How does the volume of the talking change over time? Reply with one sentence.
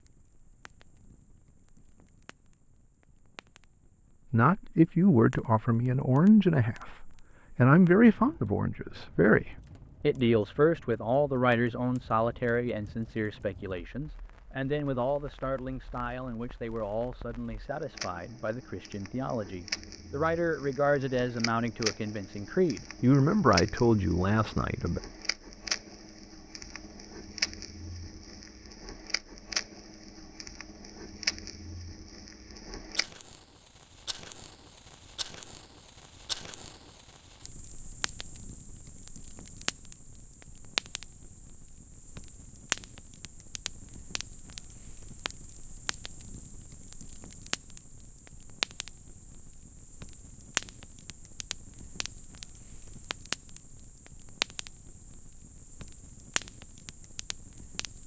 The loudness of the talking goes down, then up.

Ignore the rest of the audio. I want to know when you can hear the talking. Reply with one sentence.
You can hear the talking from 4.3 to 25.0 s.